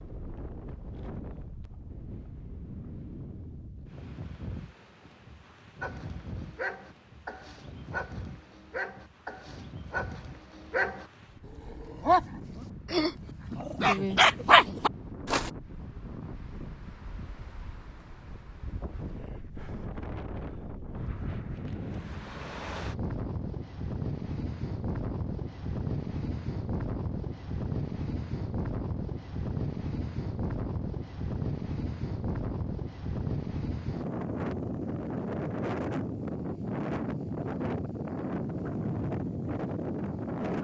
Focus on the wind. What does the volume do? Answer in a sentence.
The loudness of the wind goes up.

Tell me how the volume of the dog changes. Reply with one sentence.
The volume of the dog goes up.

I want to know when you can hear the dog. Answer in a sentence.
The dog can be heard from 5.8 to 15.5 s.